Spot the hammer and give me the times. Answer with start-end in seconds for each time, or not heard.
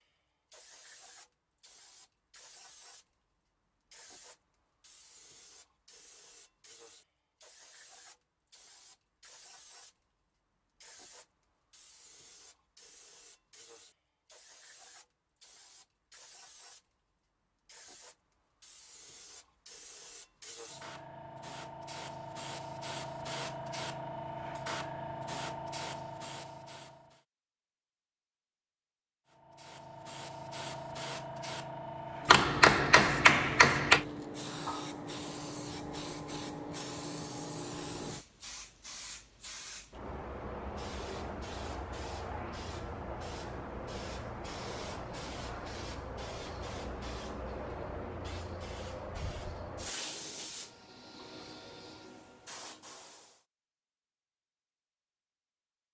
32.2-34.0.